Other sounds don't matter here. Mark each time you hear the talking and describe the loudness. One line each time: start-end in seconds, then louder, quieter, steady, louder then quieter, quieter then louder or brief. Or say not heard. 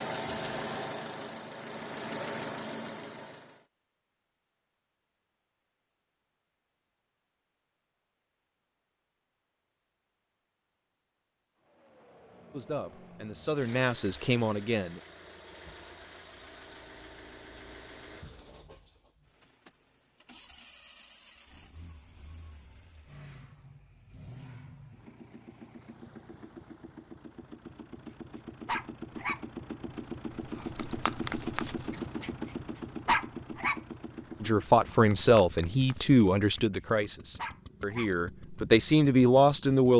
12.5-15.0 brief
34.4-39.9 quieter then louder.